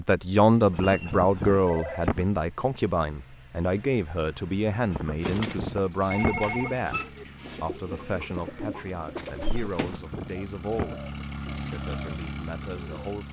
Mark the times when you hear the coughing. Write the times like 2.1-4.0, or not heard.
0.7-2.2, 4.9-7.0, 9.4-11.2.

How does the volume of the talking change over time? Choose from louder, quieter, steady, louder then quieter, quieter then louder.
quieter.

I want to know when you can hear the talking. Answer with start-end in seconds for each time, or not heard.
0.0-13.2.